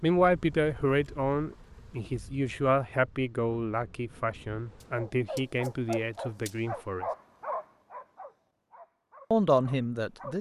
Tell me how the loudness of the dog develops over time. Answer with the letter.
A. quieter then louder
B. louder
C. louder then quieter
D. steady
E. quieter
E.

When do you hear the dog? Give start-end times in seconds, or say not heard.
4.8-10.3.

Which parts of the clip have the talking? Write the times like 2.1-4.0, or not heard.
0.0-7.0, 9.3-10.3.